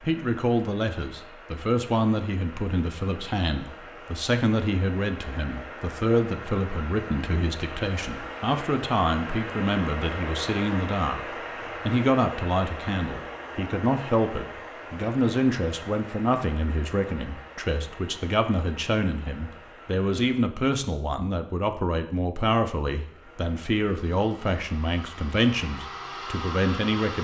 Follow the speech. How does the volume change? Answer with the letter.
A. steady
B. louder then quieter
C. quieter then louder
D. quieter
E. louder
A.